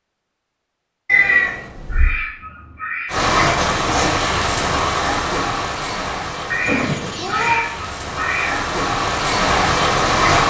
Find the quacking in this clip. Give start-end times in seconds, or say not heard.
1.1-3.2, 6.5-8.8.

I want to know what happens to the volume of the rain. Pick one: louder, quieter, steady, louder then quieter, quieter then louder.
quieter then louder.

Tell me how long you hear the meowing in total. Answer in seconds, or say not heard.
2 s.